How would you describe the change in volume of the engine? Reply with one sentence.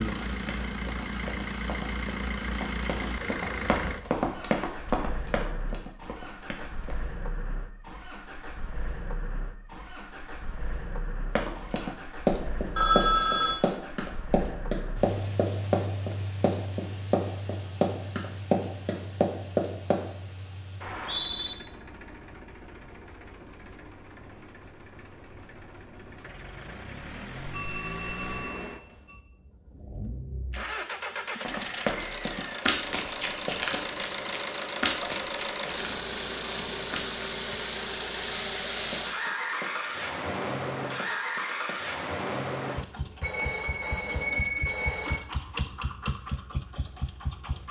The loudness of the engine goes down, then up.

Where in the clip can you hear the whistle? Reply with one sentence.
You can hear the whistle from 20.8 to 21.6 s.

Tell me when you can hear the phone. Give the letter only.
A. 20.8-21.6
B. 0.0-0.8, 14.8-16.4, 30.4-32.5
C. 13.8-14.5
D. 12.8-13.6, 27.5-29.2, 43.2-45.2
D.